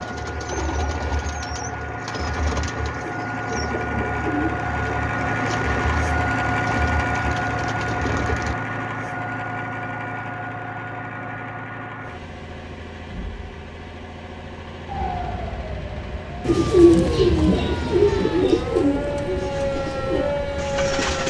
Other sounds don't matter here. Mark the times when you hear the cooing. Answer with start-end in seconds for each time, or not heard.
0.0-8.6, 16.4-21.2.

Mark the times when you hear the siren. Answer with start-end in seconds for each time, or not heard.
14.8-21.2.